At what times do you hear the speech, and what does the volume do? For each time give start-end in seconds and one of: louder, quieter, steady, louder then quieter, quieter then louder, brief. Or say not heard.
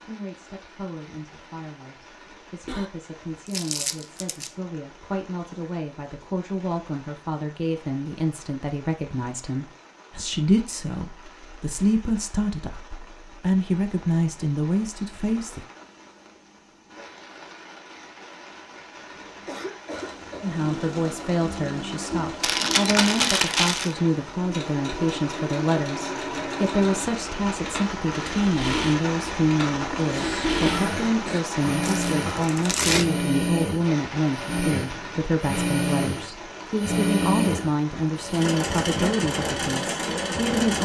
0.0-15.7 louder
20.4-40.8 steady.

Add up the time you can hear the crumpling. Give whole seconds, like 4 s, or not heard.
4 s.